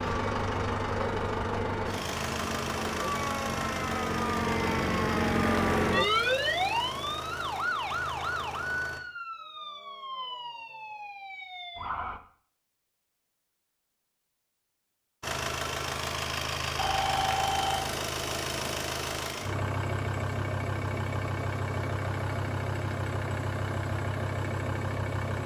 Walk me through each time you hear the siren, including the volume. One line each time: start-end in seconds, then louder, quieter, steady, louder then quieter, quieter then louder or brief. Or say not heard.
0.0-12.2 louder then quieter.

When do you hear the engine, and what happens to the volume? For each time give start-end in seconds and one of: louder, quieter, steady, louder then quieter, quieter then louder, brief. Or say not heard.
0.0-9.0 quieter
15.2-25.4 steady.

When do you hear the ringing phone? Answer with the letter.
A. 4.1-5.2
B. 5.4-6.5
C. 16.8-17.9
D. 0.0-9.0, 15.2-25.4
C.